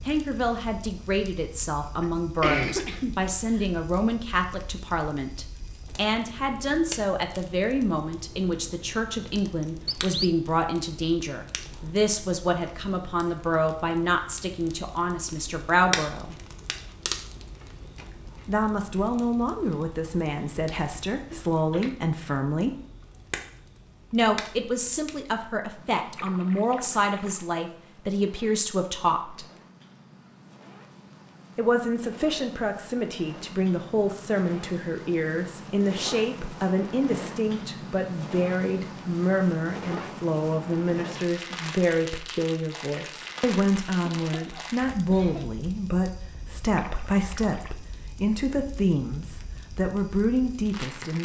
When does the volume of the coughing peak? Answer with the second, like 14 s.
3 s.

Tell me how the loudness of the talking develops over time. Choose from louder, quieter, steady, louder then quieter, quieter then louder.
steady.